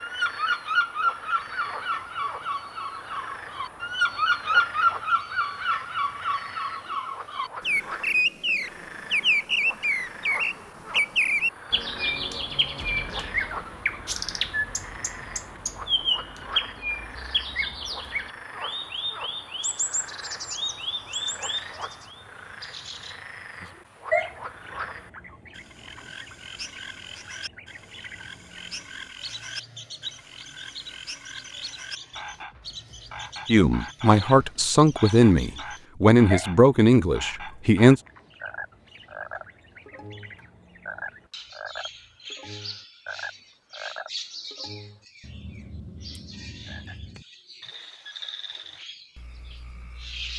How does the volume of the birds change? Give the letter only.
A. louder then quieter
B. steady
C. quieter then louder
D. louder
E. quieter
E.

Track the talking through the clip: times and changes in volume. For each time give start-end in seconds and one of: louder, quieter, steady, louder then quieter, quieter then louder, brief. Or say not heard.
33.5-38.0 steady.